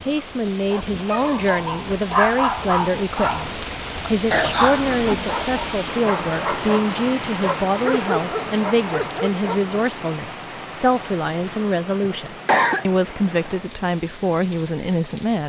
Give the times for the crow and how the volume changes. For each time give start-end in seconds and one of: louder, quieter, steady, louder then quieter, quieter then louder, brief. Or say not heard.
not heard.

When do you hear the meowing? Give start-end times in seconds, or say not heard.
not heard.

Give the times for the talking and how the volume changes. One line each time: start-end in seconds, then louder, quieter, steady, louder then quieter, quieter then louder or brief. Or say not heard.
0.0-15.4 steady.